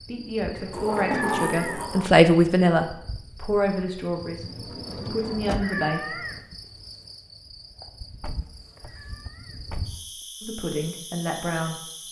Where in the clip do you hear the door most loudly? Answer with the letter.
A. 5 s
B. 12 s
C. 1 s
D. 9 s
C.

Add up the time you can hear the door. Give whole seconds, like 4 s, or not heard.
5 s.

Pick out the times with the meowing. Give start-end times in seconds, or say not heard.
0.6-1.9, 5.2-6.5, 8.4-9.7.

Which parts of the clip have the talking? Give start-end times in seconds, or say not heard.
0.0-6.2, 10.4-11.8.